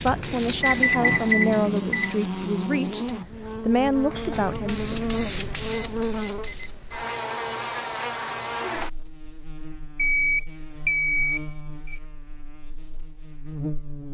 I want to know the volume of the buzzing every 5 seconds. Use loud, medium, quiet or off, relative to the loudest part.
loud, loud, medium.